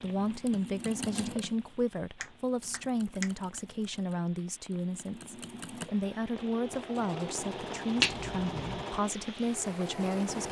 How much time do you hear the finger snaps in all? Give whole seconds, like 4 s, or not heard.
2 s.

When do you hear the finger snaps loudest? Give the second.
8 s.